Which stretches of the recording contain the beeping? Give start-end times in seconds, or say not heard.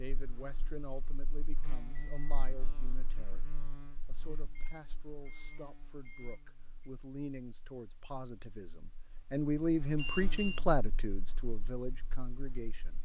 1.8-2.5, 4.5-6.9, 9.9-10.6.